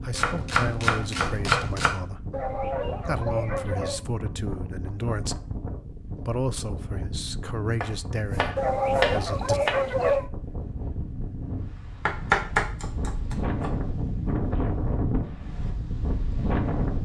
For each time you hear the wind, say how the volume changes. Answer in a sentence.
You can hear the wind from 0.0 to 17.0 s, getting louder.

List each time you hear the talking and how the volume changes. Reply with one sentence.
You can hear the talking from 0.0 to 9.6 s, at a steady volume.